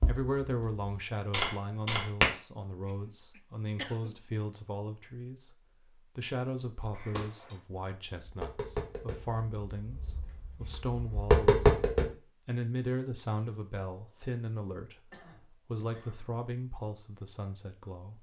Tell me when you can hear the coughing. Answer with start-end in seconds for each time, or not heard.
2.9-4.2, 6.9-7.7, 13.9-14.3, 15.1-16.4.